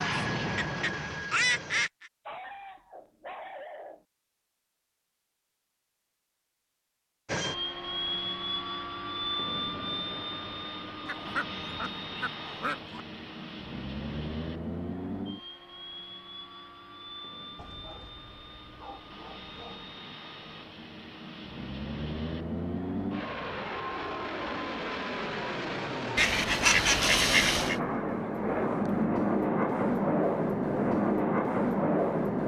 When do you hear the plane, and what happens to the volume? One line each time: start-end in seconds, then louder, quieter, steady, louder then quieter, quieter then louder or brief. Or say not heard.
0.0-1.9 brief
7.2-32.4 quieter then louder.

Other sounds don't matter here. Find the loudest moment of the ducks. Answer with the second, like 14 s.
27 s.